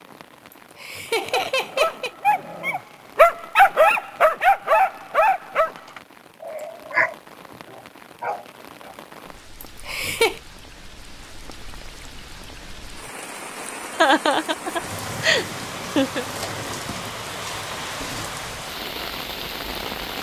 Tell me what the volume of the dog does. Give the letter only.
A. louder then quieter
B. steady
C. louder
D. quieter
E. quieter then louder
A.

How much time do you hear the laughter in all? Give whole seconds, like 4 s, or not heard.
5 s.